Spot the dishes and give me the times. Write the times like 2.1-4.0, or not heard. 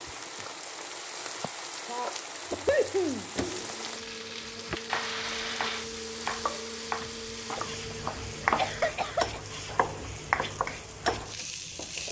not heard.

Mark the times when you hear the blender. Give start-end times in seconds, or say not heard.
3.5-8.9.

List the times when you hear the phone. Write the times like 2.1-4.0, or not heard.
not heard.